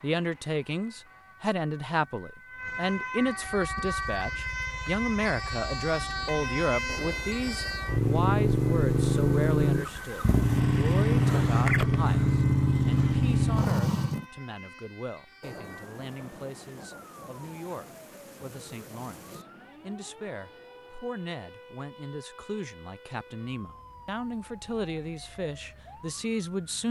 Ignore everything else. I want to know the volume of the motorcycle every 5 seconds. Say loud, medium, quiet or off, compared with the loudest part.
quiet, loud, loud, off, off, off.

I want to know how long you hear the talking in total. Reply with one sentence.
You can hear the talking for 27 seconds altogether.